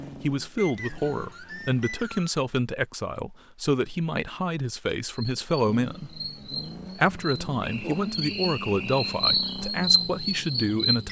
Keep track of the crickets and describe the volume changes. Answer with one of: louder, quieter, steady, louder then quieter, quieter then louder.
louder.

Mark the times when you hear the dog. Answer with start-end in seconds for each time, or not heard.
not heard.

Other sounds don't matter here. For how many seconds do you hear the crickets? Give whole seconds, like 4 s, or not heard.
6 s.